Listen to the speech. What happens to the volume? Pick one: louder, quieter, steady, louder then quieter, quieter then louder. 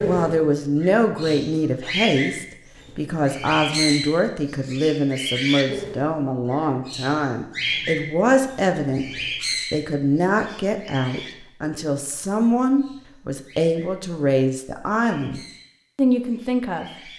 steady.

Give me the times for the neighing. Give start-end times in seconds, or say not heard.
not heard.